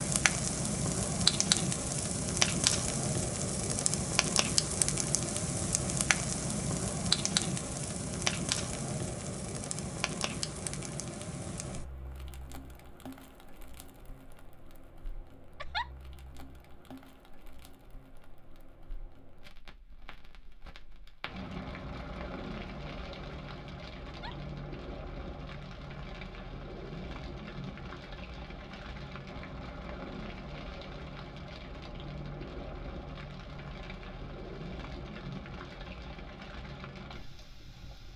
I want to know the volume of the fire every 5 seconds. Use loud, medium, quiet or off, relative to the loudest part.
loud, loud, quiet, quiet, quiet, quiet, quiet, quiet.